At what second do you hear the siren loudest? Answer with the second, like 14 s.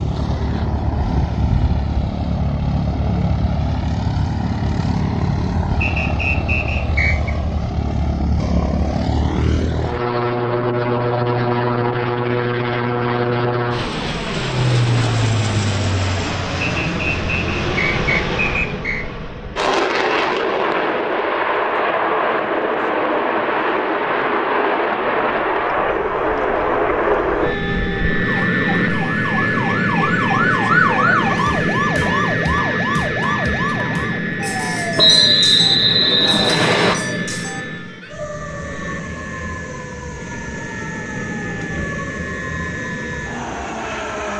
31 s.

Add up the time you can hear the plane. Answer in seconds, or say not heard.
44 s.